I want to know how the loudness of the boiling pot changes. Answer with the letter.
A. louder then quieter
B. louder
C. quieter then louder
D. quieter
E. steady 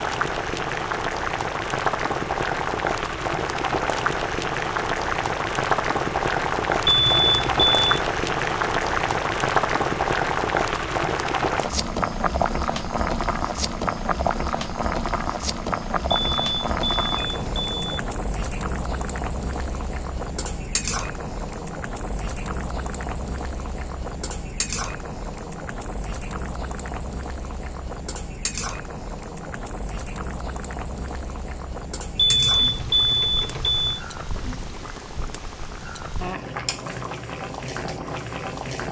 D.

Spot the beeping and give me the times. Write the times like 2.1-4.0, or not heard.
6.8-8.0, 16.1-18.0, 32.1-34.0.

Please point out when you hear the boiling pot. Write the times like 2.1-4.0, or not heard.
0.0-38.8.